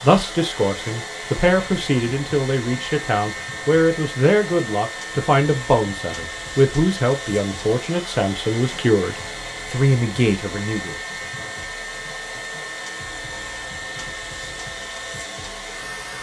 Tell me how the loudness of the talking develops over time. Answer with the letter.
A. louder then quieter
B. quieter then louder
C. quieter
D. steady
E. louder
D.